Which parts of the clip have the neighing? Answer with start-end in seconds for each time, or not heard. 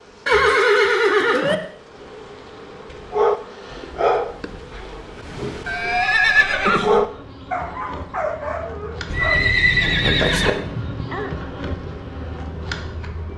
0.2-1.6, 5.7-7.0, 9.1-10.6.